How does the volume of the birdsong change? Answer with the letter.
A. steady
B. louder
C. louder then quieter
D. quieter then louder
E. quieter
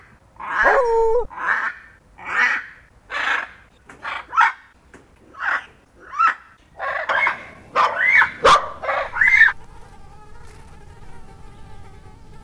B.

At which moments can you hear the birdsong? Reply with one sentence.
The birdsong can be heard from 0.4 to 4.5 s and from 5.3 to 9.6 s.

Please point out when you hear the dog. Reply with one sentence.
You can hear the dog from 0.6 to 1.3 s and from 7.0 to 8.8 s.